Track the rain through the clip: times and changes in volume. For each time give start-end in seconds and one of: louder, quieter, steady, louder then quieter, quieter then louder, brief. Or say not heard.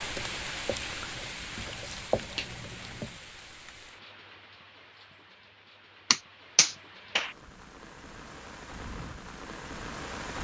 0.0-10.3 quieter then louder.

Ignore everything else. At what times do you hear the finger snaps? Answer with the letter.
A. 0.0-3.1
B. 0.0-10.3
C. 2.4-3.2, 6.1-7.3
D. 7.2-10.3
C.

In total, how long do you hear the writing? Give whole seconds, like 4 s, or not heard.
3 s.